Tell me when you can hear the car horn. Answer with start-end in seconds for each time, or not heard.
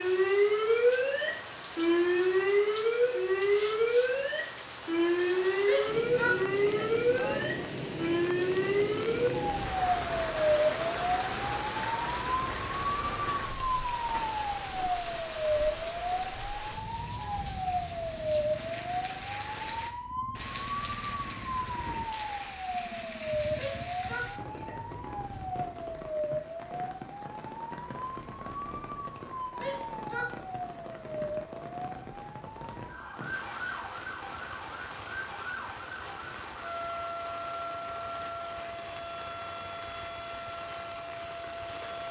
not heard.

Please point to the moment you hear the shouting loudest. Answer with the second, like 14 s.
6 s.